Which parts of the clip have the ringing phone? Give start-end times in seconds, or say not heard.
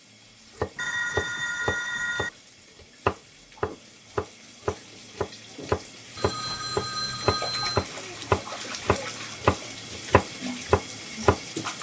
0.8-2.3, 6.2-7.8.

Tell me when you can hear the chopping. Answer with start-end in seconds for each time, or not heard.
0.6-11.4.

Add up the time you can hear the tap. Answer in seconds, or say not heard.
12 s.